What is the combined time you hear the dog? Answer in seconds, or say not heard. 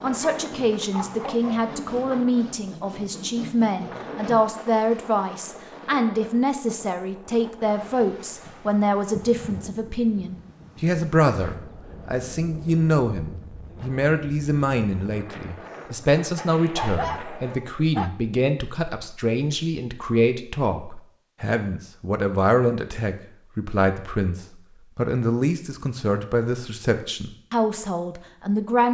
4 s.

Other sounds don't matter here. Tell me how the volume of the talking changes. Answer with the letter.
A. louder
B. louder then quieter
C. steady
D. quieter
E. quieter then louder
C.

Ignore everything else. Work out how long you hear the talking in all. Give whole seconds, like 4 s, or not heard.
29 s.